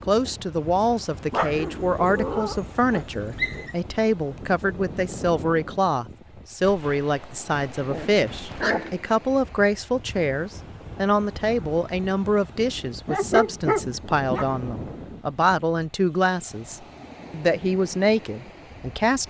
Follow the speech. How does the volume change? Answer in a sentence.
The loudness of the speech stays about the same.